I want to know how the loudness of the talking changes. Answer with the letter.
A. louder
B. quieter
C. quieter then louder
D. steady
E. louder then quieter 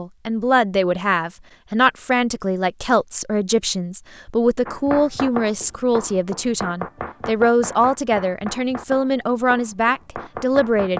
D.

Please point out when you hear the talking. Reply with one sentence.
The talking can be heard from 0.0 to 10.9 s.